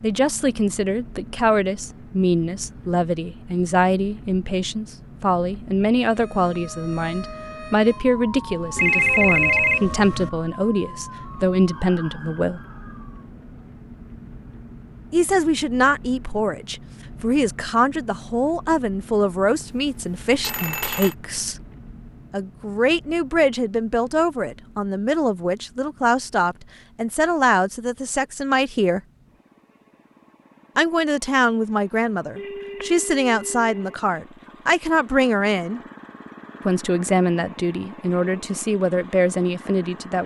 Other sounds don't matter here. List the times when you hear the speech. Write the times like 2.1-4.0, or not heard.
0.0-12.6, 15.1-21.6, 22.3-29.0, 30.8-35.8, 36.6-40.2.